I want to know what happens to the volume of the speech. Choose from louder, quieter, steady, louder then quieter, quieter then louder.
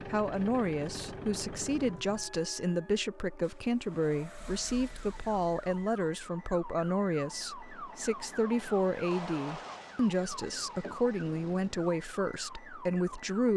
steady.